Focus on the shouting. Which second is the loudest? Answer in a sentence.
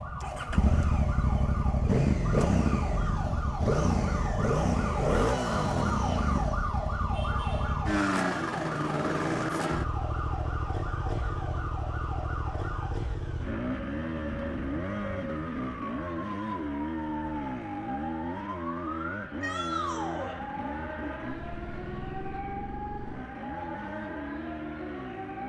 The loudest moment of the shouting is at 20 seconds.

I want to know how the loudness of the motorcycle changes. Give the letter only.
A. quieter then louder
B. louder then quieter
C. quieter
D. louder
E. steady
C.